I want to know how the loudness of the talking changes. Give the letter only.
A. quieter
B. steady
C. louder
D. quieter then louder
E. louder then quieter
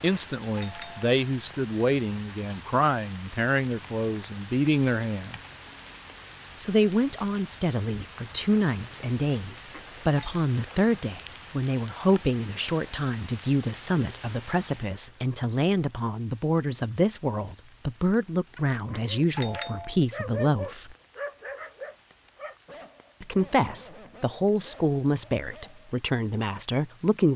B.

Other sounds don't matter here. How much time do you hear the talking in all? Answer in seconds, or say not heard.
24 s.